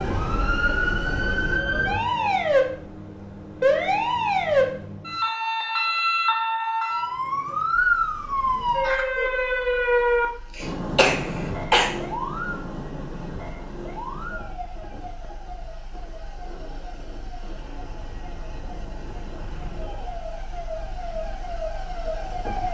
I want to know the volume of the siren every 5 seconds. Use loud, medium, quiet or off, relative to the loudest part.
loud, loud, medium, quiet, medium.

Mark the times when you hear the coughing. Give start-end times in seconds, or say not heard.
10.9-11.9.